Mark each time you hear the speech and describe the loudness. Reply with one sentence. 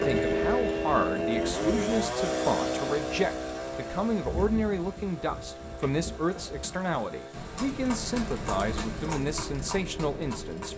The speech can be heard from 0.0 to 10.7 s, at a steady volume.